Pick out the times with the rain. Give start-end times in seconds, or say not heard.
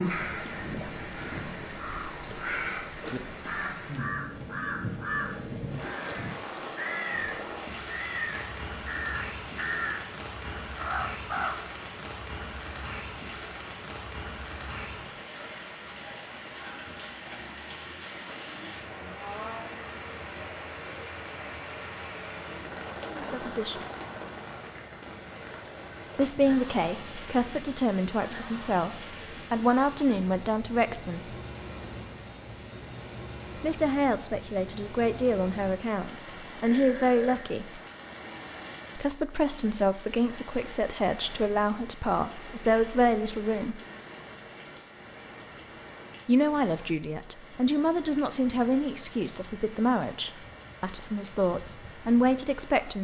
0.0-52.9.